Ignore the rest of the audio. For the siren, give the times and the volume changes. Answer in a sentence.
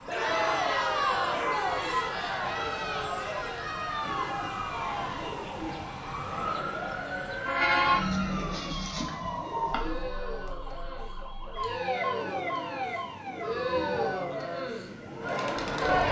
You can hear the siren from 0.0 to 15.8 s, getting louder then quieter.